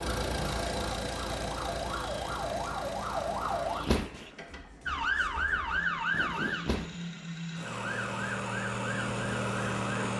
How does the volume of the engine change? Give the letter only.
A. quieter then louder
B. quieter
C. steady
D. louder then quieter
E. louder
A.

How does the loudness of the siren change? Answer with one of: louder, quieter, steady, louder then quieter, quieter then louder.
louder then quieter.